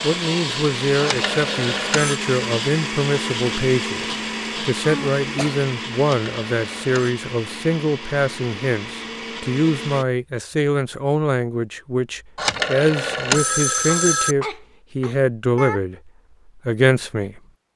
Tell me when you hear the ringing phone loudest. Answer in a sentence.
The volume of the ringing phone peaks at 13 seconds.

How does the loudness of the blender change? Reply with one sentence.
The volume of the blender goes down.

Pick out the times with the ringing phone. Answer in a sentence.
The ringing phone can be heard from 1.0 to 2.2 s, from 6.0 to 7.2 s and from 12.3 to 14.3 s.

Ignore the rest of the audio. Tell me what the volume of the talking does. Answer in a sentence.
The volume of the talking stays about the same.